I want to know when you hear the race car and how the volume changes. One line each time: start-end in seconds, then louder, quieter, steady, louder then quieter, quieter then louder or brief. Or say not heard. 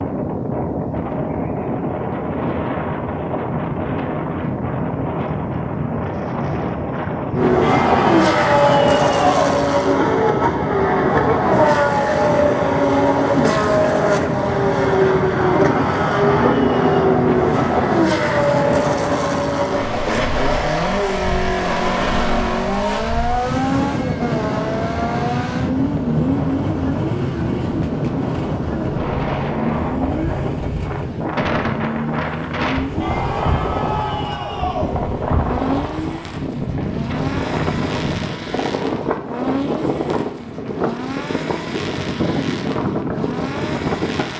7.3-44.3 quieter.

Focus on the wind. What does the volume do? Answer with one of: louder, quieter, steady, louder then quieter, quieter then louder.
steady.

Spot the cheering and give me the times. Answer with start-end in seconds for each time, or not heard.
7.6-9.6, 15.4-16.9, 33.0-35.0.